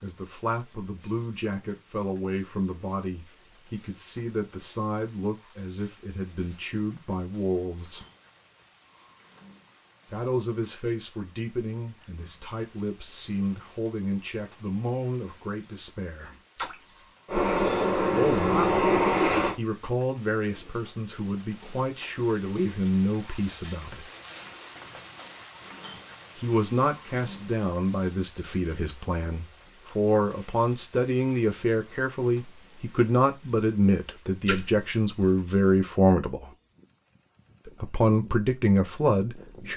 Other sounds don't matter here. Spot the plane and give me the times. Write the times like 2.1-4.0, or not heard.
17.2-19.6.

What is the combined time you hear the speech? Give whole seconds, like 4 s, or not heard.
32 s.